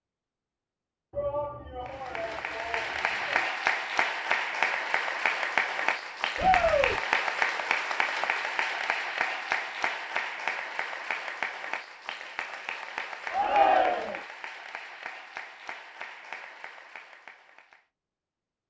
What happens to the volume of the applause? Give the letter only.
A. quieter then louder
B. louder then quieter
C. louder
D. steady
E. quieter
E.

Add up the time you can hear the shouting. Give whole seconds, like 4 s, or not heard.
4 s.